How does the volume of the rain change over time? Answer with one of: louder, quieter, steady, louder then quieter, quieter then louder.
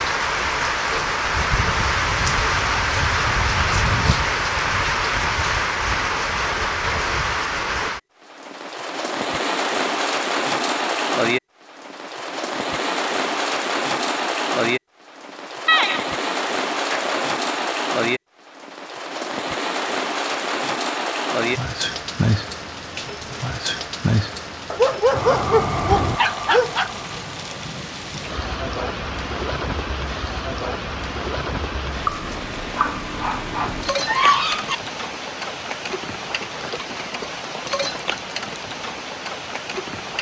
quieter.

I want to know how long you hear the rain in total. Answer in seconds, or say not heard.
40 s.